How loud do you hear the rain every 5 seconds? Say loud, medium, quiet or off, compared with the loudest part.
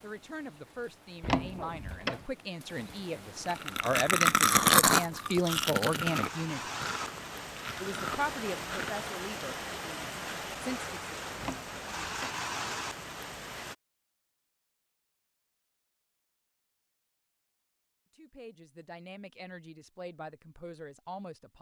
quiet, loud, loud, off, off.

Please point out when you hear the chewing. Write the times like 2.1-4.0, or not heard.
3.5-9.1.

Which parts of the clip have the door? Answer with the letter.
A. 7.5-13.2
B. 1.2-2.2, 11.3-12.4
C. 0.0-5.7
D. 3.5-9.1
B.